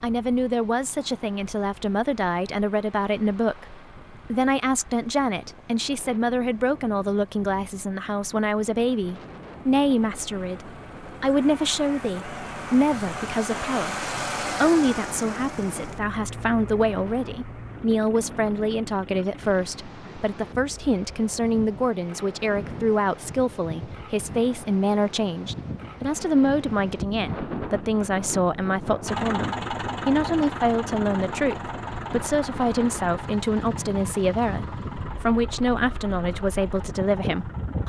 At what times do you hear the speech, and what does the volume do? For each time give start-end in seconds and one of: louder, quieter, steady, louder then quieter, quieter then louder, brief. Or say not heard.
0.0-37.8 steady.